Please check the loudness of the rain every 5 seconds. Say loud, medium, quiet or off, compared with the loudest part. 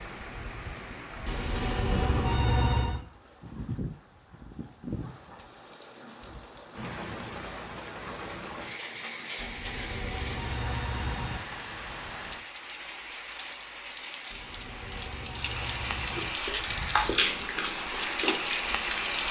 medium, medium, medium, loud.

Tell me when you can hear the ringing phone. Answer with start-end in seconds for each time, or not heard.
1.2-3.0, 9.3-11.4, 14.3-16.3.